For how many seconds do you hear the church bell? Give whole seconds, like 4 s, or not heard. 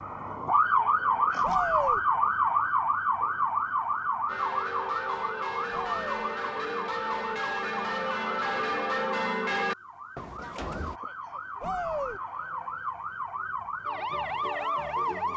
7 s.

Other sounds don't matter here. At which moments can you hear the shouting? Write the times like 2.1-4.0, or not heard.
1.4-2.0, 5.7-6.2, 11.6-12.2.